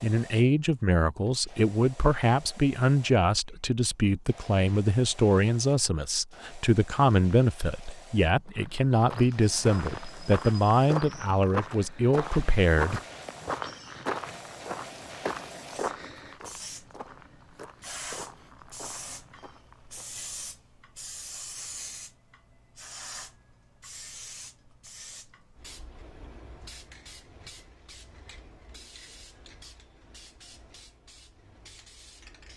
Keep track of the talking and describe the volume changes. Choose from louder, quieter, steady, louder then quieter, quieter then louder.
steady.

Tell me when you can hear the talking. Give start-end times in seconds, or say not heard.
0.0-13.0.